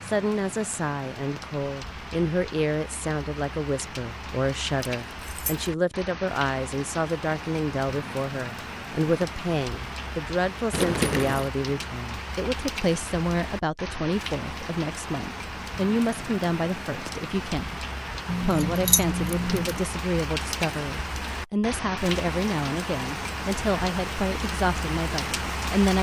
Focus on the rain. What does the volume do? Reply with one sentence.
The volume of the rain goes up.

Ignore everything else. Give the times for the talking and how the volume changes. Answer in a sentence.
The talking can be heard from 0.0 to 25.9 s, at a steady volume.